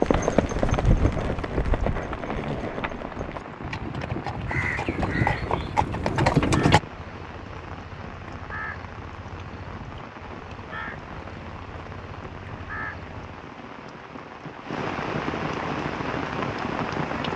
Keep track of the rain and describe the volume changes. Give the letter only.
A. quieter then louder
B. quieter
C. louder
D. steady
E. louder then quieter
C.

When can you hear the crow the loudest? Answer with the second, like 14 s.
5 s.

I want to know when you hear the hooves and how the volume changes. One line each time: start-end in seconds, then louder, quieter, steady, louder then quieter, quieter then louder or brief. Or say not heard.
0.0-6.8 quieter then louder.